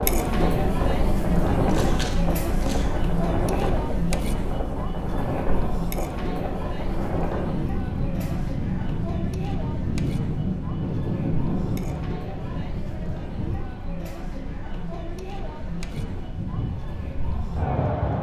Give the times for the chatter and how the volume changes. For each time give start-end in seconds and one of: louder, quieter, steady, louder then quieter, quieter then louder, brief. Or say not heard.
0.0-18.1 quieter.